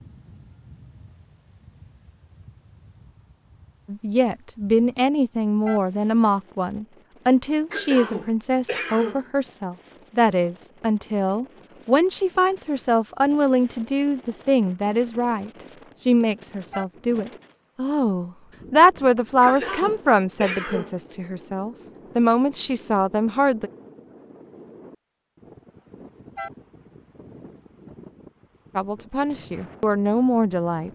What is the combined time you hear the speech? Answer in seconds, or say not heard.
22 s.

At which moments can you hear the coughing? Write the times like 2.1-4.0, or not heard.
7.7-9.3, 19.4-21.0.